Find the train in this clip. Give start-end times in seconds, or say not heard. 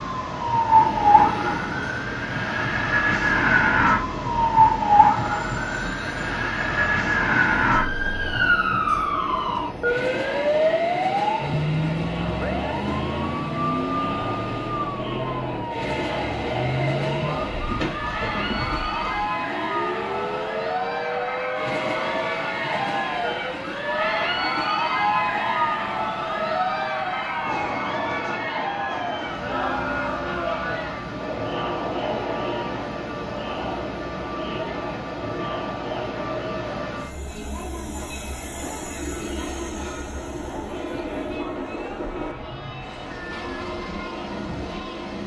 0.0-45.2.